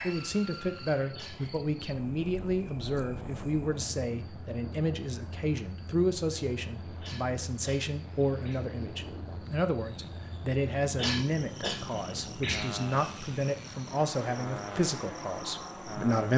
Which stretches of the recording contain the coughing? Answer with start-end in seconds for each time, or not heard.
1.1-1.6, 7.0-8.7, 10.9-12.7.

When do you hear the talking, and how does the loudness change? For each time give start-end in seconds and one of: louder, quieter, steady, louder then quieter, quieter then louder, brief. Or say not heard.
0.0-16.3 steady.